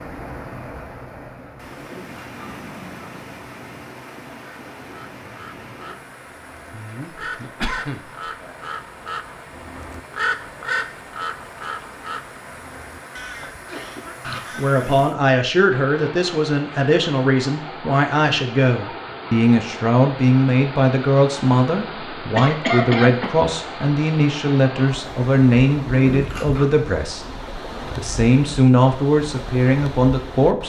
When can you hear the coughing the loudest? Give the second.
23 s.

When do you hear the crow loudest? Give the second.
10 s.